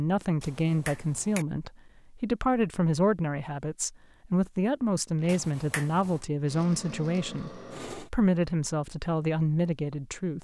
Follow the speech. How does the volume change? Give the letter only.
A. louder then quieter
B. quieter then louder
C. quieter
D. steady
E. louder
D.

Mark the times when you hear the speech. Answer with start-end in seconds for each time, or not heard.
0.0-10.3.